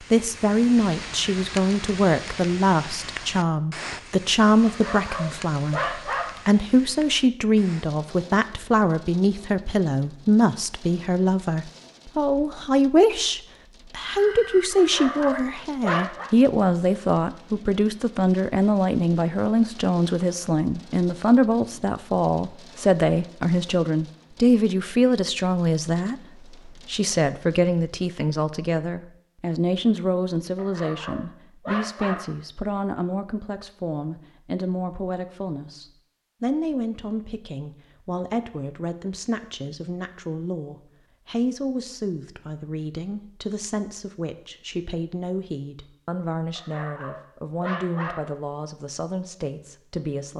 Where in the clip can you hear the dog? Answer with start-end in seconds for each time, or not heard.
4.7-6.4, 14.8-16.3, 30.6-32.4, 46.5-48.3.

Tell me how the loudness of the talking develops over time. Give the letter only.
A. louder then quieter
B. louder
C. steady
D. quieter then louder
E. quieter
E.